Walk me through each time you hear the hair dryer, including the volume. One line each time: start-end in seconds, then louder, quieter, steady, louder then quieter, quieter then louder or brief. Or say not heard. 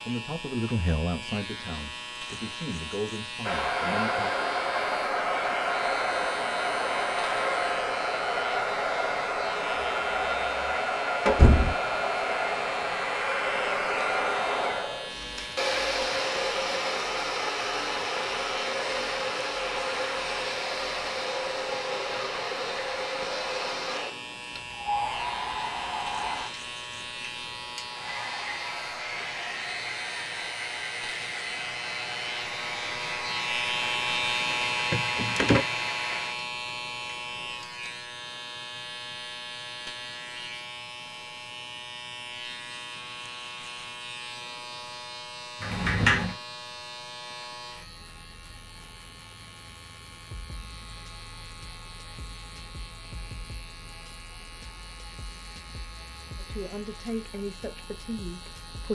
3.4-37.6 quieter.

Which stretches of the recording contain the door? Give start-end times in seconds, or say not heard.
11.3-11.8, 34.9-35.6, 45.6-46.4.